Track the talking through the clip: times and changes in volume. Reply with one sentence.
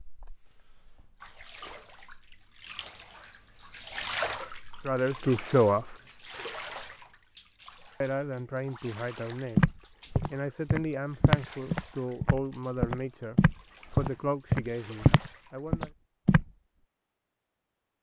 The talking can be heard briefly from 4.8 to 6.0 s; and from 8.0 to 15.9 s, at a steady volume.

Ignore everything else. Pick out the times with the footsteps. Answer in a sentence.
The footsteps can be heard from 9.6 to 16.4 s.